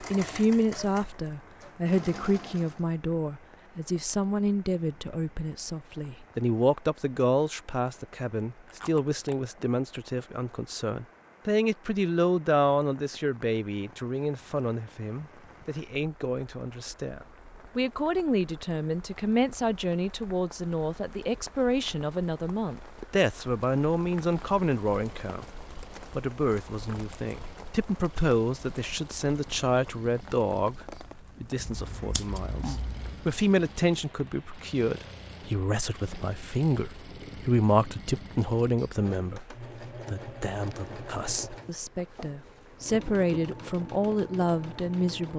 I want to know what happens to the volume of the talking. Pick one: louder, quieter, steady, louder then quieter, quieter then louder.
steady.